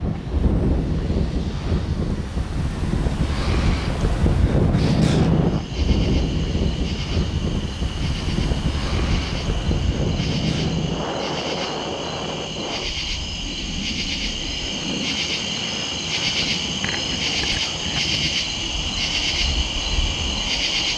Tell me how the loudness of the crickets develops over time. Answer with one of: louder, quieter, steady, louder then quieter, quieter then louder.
louder.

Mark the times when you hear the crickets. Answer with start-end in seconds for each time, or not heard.
5.3-20.9.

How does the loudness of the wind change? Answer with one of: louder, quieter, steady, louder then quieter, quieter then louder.
quieter.